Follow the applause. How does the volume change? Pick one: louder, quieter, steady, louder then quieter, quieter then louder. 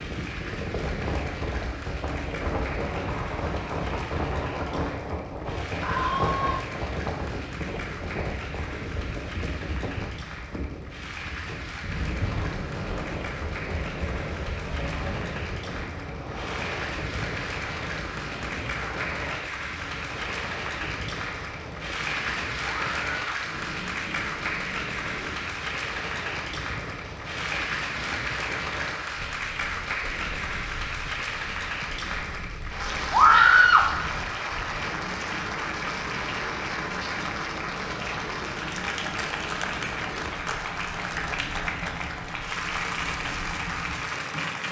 louder.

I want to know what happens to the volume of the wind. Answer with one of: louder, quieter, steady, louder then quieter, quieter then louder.
quieter.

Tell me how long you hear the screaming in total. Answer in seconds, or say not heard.
2 s.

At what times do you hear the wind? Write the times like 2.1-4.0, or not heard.
0.0-44.6.